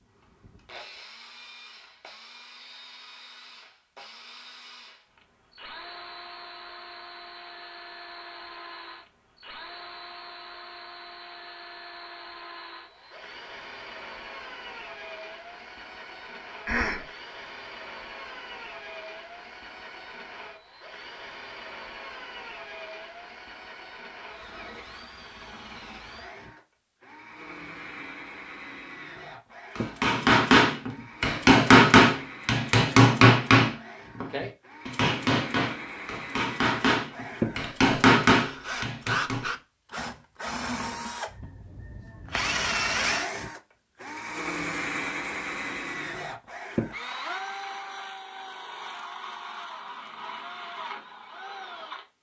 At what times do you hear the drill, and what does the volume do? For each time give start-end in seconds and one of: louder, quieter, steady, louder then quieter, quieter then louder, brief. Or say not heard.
0.1-52.0 louder.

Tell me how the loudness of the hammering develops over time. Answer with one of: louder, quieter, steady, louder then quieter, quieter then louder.
quieter then louder.